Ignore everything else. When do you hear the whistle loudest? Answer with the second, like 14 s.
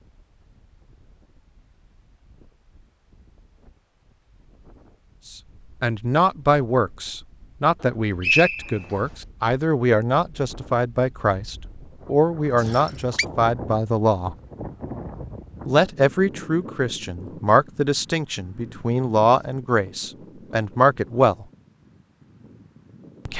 8 s.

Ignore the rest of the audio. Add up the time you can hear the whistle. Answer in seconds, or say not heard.
2 s.